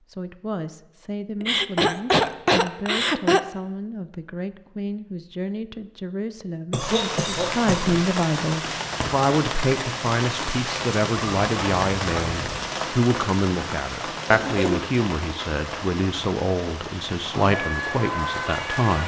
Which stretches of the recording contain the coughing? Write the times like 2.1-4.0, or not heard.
1.4-3.4, 6.7-8.0, 14.2-14.9.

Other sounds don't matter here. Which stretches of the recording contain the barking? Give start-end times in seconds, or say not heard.
11.1-12.7.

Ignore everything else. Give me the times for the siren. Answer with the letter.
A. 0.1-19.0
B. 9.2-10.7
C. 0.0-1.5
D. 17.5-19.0
D.